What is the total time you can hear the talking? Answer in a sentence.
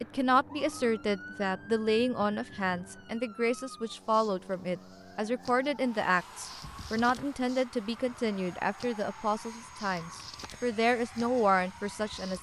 The talking can be heard for 12 seconds in total.